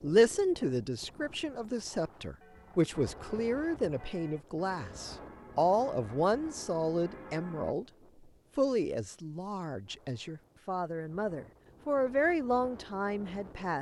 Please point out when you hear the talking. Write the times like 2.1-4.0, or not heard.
0.0-7.8, 8.6-13.7.